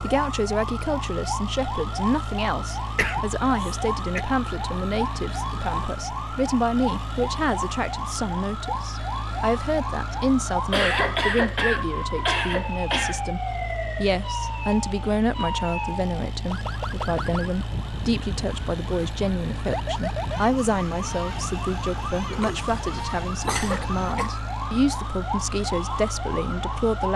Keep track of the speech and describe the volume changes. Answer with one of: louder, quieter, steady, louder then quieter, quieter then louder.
steady.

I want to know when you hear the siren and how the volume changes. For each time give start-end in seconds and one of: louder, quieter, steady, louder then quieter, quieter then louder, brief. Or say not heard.
0.0-27.1 steady.